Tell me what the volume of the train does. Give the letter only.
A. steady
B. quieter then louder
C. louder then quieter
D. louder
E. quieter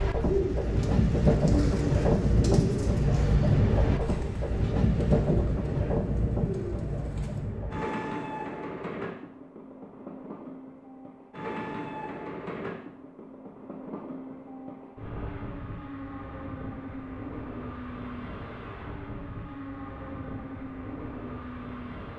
E.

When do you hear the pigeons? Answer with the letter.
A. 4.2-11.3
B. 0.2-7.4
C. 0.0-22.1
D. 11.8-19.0
B.